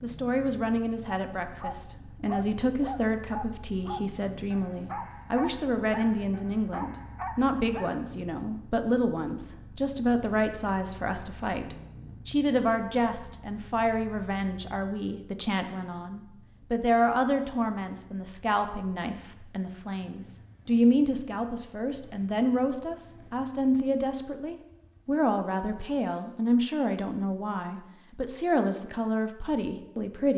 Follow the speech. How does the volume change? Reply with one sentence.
The volume of the speech stays about the same.